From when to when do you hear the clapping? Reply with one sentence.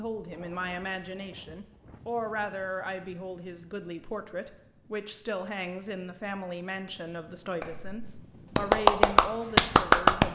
You can hear the clapping from 7.6 to 10.3 s.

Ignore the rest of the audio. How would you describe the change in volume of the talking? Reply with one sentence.
The loudness of the talking stays about the same.